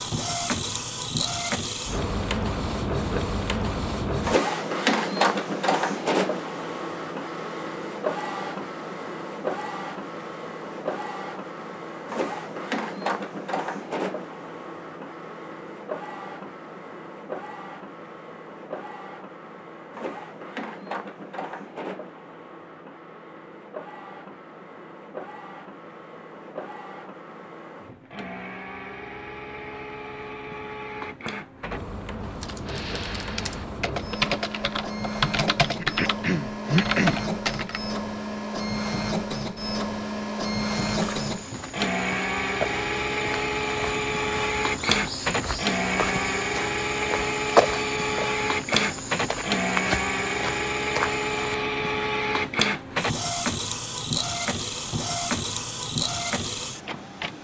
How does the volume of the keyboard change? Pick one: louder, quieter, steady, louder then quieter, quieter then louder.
louder.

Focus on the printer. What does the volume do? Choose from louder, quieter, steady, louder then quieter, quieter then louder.
quieter then louder.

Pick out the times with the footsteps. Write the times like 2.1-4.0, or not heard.
40.8-51.5.